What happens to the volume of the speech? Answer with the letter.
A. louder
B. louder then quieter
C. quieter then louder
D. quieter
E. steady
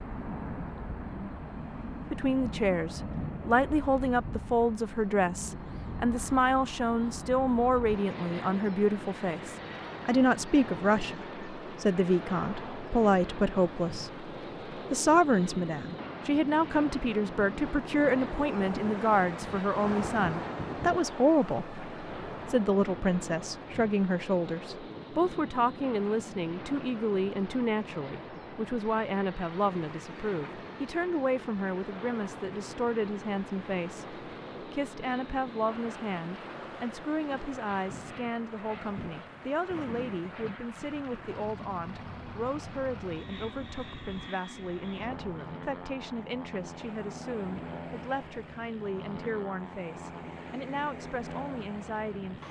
D.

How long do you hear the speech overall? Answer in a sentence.
You can hear the speech for 50 seconds altogether.